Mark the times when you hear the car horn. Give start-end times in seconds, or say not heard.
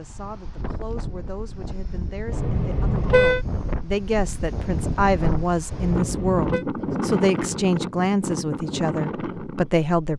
2.3-3.4, 5.7-6.7.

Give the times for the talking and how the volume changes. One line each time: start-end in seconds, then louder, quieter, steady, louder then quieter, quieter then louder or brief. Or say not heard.
0.0-10.1 louder.